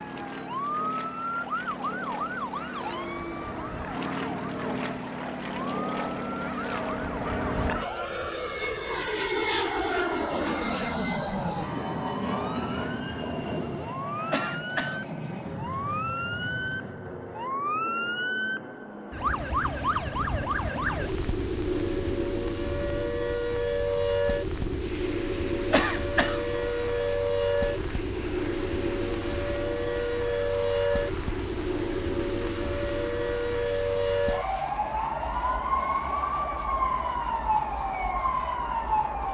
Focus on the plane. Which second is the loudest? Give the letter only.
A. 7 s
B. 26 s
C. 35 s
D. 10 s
D.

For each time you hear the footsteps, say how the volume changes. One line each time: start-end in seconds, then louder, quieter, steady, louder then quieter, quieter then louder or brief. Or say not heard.
not heard.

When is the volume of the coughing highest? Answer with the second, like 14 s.
26 s.